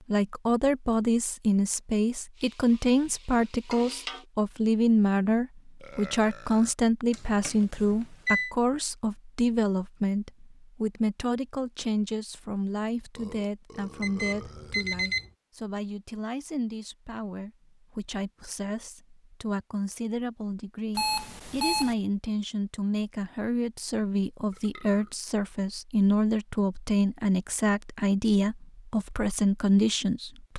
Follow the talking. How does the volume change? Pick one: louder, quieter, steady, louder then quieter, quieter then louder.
quieter then louder.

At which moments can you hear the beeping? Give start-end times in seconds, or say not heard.
7.1-8.6, 14.0-15.3, 20.9-21.9.